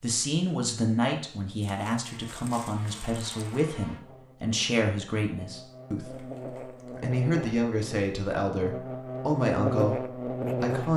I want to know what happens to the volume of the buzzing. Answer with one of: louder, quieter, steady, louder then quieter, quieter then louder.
louder.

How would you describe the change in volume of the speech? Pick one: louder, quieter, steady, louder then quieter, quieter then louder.
steady.